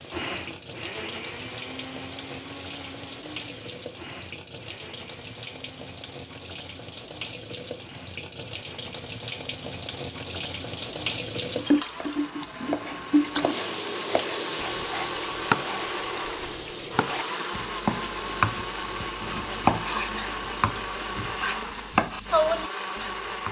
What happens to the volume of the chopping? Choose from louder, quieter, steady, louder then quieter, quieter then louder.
louder.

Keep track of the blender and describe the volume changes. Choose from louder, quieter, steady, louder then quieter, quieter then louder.
quieter then louder.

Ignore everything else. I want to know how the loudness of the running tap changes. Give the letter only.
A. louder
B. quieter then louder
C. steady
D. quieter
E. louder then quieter
E.